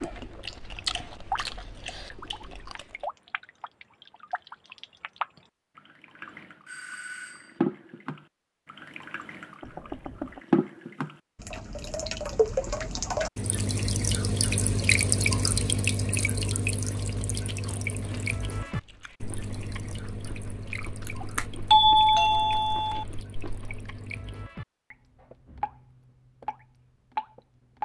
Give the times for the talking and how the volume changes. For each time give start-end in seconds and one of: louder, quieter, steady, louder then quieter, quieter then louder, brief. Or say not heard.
not heard.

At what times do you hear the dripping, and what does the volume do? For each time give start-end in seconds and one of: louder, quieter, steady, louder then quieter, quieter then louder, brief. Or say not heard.
0.0-27.8 louder then quieter.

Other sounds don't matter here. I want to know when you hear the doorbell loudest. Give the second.
22 s.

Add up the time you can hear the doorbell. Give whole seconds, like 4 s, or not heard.
4 s.